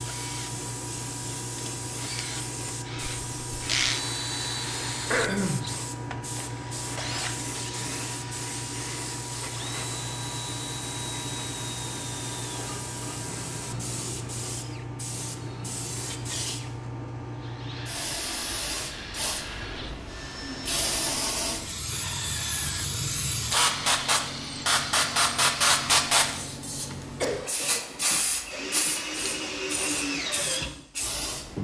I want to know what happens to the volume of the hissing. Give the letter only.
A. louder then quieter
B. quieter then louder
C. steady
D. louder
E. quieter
D.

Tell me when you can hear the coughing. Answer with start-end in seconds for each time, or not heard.
5.1-5.7, 27.2-27.8.